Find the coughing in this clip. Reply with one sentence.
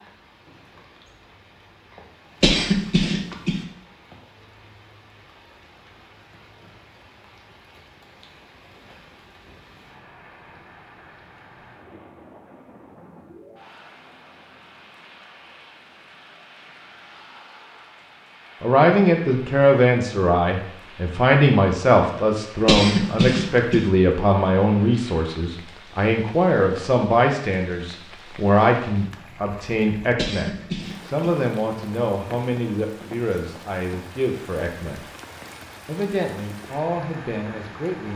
The coughing can be heard from 2.4 to 3.6 s, from 22.6 to 23.9 s and from 30.1 to 31.4 s.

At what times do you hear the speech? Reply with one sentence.
You can hear the speech from 18.6 to 35.0 s and from 35.9 to 38.1 s.